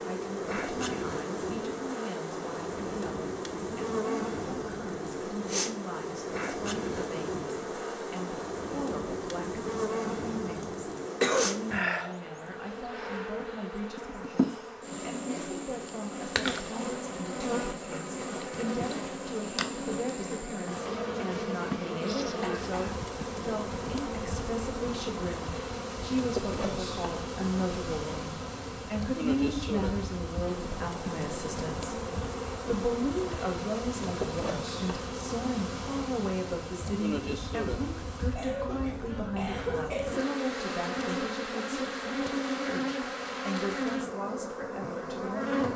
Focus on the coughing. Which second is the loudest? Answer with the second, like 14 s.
11 s.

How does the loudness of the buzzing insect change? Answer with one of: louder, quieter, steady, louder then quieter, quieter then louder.
steady.